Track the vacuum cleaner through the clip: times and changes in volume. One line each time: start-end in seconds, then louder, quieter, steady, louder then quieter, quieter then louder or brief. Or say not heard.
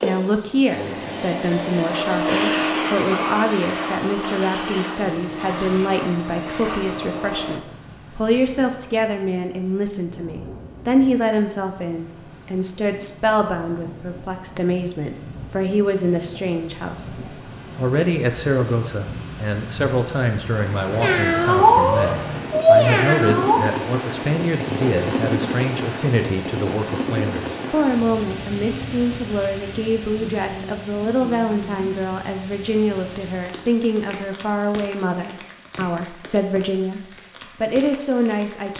0.0-7.6 louder then quieter.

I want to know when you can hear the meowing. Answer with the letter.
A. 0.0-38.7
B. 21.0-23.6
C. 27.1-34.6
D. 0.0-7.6
B.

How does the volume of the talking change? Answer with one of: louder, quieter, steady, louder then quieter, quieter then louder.
steady.